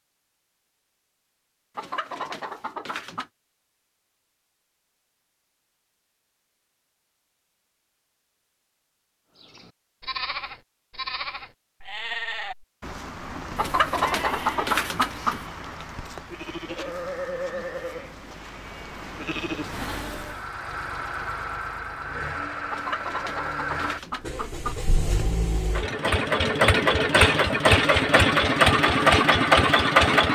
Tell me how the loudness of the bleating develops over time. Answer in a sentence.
The volume of the bleating stays about the same.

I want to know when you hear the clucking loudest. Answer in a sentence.
The volume of the clucking peaks at 15 seconds.